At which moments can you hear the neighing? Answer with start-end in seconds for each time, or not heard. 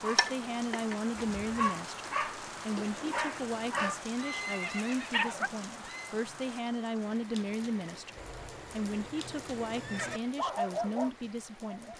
1.2-1.7, 4.2-6.2, 8.2-10.2.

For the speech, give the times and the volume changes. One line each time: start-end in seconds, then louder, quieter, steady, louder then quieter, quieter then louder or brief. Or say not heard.
0.0-11.9 steady.